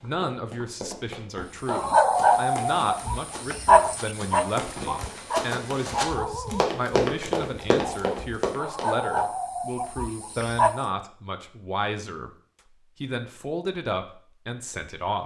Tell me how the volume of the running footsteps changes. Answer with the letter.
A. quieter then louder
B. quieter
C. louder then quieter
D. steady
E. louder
E.